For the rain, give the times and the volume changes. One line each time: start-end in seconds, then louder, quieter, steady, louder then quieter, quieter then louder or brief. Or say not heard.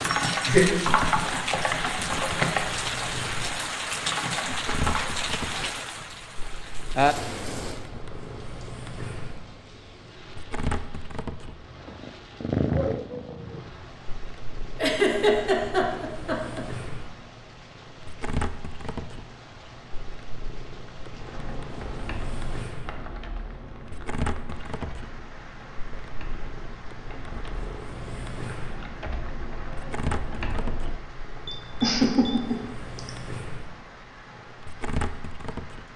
0.0-35.9 quieter.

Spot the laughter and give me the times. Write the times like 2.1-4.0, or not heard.
0.1-0.7, 14.8-16.6, 31.5-33.1.